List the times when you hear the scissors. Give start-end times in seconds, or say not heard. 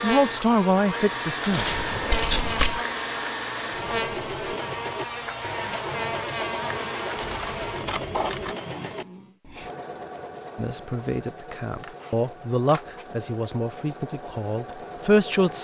1.5-2.8, 7.2-8.6, 11.8-13.1.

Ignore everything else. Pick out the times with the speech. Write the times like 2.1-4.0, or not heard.
0.0-1.8, 10.6-15.5.